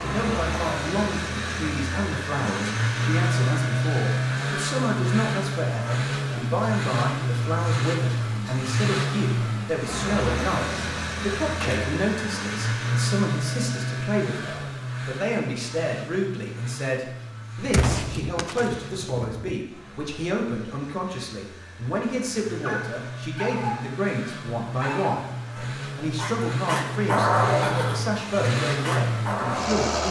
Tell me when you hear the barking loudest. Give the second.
27 s.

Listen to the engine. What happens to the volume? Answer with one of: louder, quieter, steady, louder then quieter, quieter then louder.
quieter then louder.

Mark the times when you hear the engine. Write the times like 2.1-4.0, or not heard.
0.0-30.0.